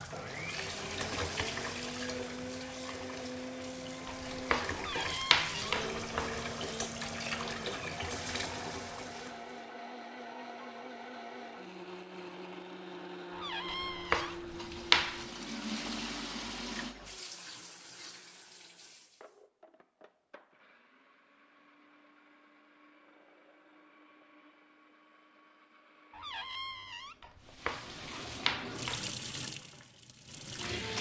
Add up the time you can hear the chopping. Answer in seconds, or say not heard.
6 s.